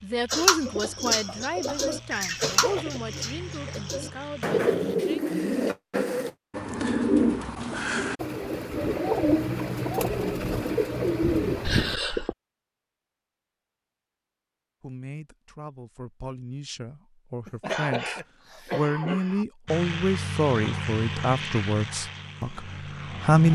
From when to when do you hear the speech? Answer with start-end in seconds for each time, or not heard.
0.0-5.2, 14.8-23.5.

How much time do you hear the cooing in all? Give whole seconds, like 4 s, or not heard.
12 s.